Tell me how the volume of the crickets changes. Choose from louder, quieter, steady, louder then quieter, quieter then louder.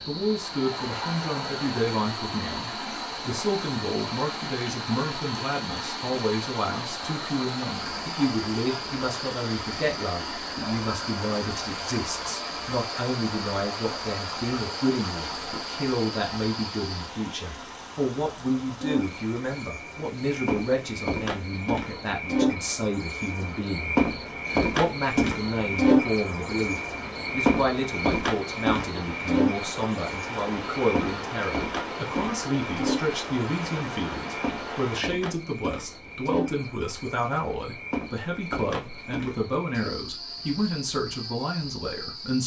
louder then quieter.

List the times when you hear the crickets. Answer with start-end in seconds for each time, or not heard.
0.0-42.4.